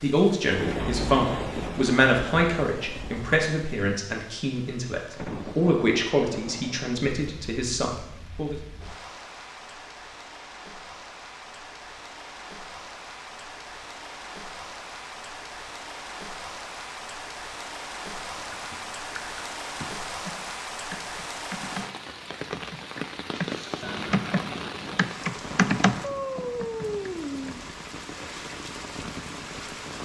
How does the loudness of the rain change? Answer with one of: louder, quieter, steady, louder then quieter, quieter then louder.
quieter then louder.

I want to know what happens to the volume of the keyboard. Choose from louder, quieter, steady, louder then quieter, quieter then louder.
louder.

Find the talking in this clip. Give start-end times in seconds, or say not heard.
0.0-8.6.